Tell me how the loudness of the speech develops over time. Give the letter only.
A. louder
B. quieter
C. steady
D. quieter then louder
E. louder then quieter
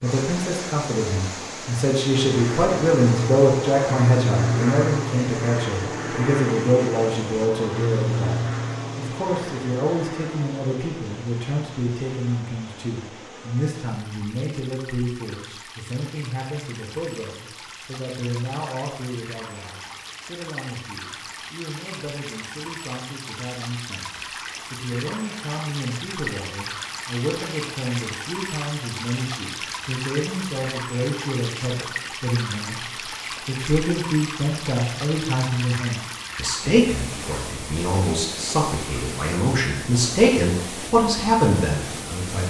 D.